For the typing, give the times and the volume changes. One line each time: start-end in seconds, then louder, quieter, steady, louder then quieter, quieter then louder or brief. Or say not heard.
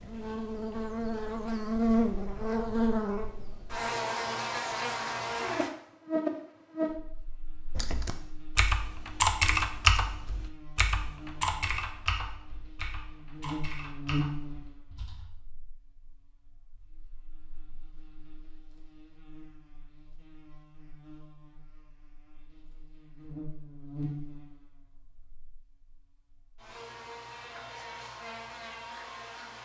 7.8-15.3 quieter.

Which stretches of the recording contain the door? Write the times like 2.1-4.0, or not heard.
not heard.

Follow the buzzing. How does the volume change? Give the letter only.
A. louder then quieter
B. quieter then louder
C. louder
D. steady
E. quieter
B.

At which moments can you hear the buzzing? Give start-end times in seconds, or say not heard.
0.0-29.5.